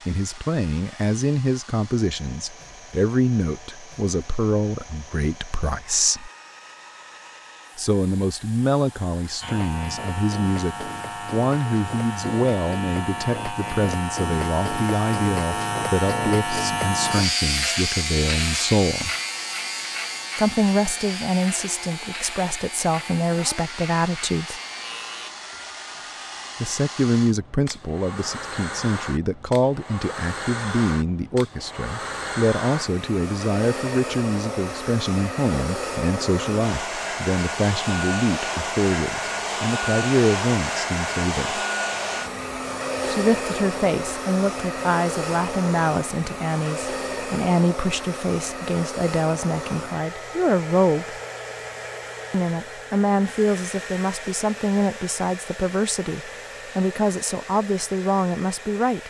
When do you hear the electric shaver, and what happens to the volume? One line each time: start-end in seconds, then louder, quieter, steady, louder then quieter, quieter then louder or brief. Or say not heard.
9.4-25.3 louder then quieter.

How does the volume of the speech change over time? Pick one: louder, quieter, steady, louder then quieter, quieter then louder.
steady.